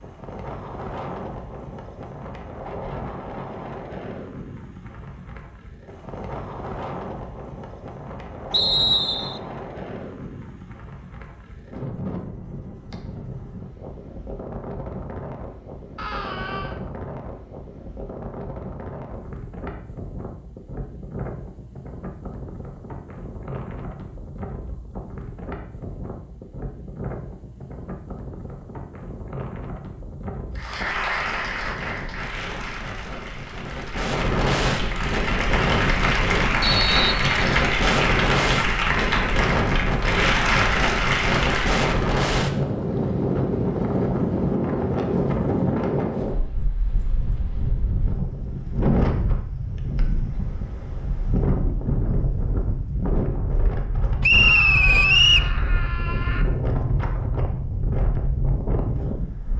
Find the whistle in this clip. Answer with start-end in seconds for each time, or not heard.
8.5-9.4, 36.6-37.7, 54.2-55.5.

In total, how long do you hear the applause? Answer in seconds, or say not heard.
11 s.